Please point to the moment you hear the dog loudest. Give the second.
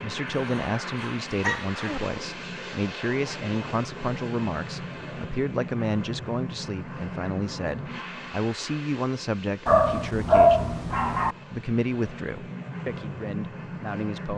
10 s.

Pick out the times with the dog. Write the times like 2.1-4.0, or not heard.
0.2-2.0, 9.7-11.3.